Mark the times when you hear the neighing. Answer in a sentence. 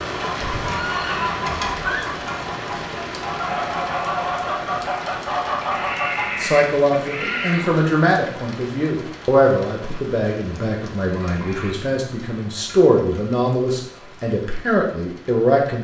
The neighing can be heard from 0.4 to 2.0 s, from 5.7 to 7.7 s and from 11.2 to 11.8 s.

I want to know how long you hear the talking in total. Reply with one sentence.
The talking can be heard for 9 seconds in total.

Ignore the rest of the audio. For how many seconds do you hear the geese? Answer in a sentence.
You can hear the geese for 6 seconds altogether.